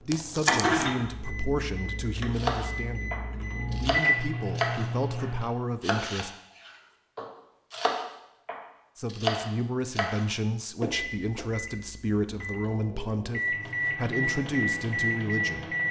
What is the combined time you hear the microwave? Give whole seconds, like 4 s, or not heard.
10 s.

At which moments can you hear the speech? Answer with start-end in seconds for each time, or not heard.
0.0-6.3, 8.9-15.8.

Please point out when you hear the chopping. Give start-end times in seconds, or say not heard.
2.4-4.8, 5.8-11.4.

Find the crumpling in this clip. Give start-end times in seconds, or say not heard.
0.1-0.8.